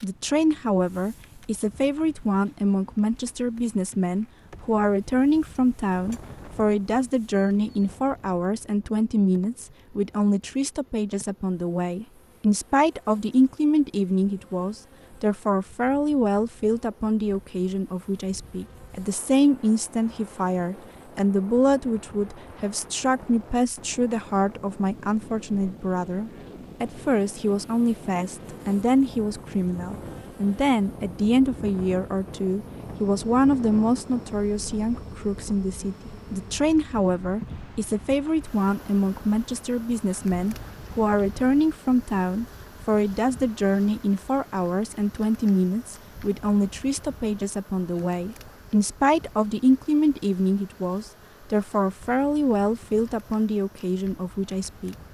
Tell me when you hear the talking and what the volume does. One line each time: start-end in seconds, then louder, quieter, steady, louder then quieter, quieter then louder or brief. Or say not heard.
0.0-55.0 steady.